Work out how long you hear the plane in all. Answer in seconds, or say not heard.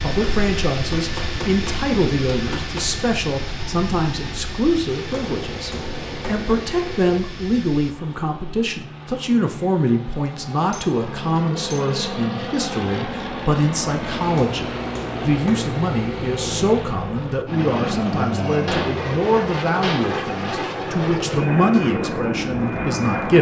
23 s.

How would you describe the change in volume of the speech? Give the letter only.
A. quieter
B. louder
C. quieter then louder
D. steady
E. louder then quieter
D.